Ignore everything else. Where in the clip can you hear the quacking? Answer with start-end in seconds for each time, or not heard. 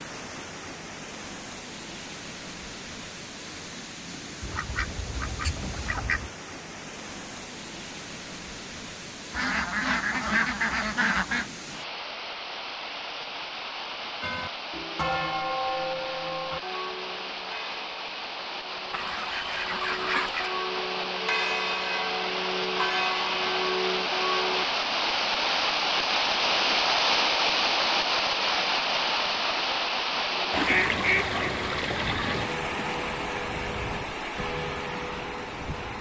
4.4-6.3, 9.3-11.5, 18.9-20.6, 30.5-32.5.